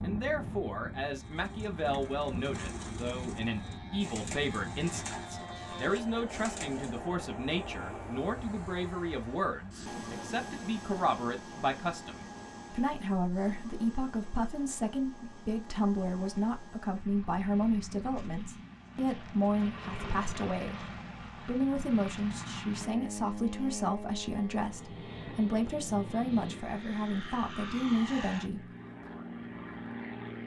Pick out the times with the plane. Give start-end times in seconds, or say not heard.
0.0-30.4.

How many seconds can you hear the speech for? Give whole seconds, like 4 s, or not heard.
28 s.